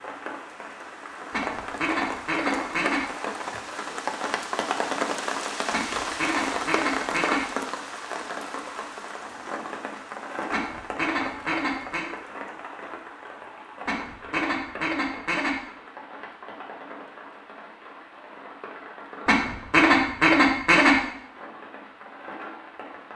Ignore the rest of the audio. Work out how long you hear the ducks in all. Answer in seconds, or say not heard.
8 s.